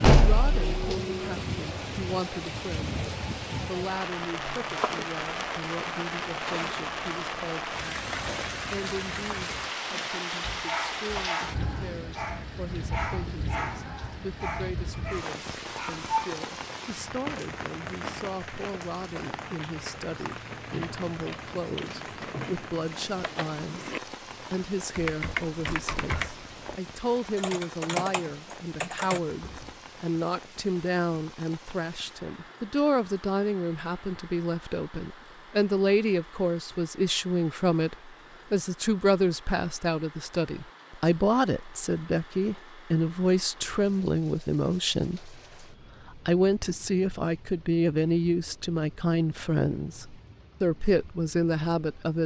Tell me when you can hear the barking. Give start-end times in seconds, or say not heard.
8.8-16.4.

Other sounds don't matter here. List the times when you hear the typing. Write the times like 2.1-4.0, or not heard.
20.6-29.7.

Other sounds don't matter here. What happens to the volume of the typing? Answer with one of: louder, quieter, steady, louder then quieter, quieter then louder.
louder.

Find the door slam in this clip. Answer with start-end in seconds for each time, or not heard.
0.0-0.9.